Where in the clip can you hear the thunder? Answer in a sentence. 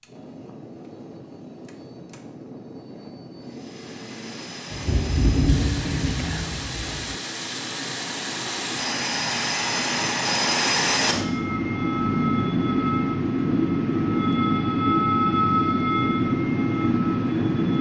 The thunder can be heard from 4.7 to 7.2 s.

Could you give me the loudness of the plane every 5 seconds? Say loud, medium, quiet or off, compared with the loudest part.
quiet, medium, loud, loud.